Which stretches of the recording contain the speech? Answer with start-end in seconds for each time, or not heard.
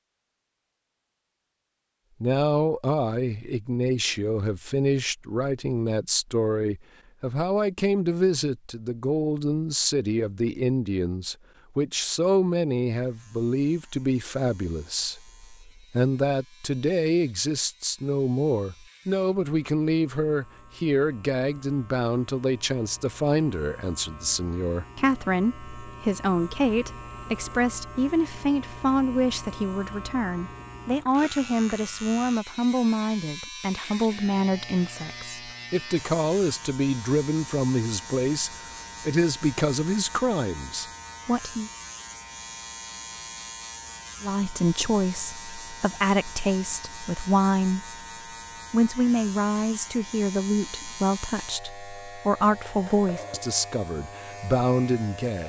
2.2-41.7, 44.2-48.0, 48.7-55.4.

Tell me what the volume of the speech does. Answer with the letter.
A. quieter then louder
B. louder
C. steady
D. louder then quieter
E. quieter
C.